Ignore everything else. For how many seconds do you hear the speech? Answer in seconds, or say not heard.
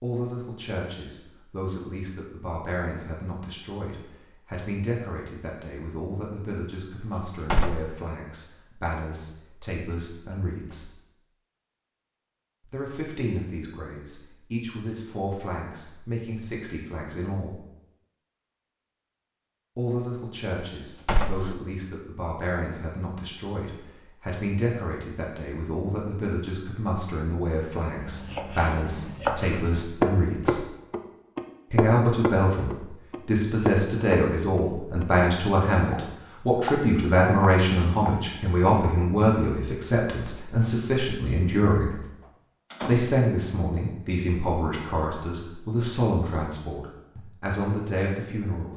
43 s.